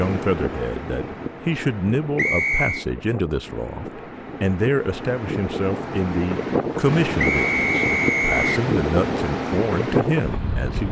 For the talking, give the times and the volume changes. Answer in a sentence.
The talking can be heard from 0.0 to 10.8 s, at a steady volume.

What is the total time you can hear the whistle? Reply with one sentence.
You can hear the whistle for 2 seconds altogether.